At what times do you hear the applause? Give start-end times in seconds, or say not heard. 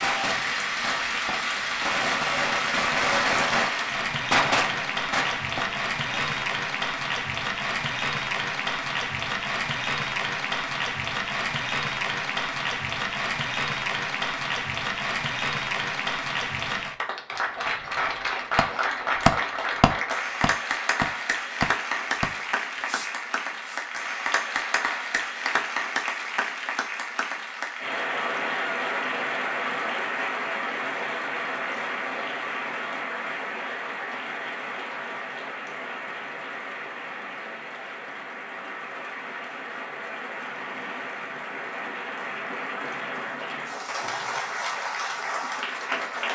0.0-46.3.